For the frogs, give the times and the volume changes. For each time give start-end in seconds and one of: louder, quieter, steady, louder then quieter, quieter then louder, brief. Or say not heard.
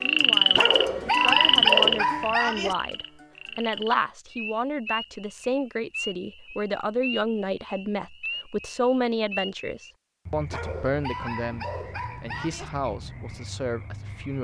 0.0-14.3 quieter.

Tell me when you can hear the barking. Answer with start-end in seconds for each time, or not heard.
0.5-2.8, 10.5-12.7.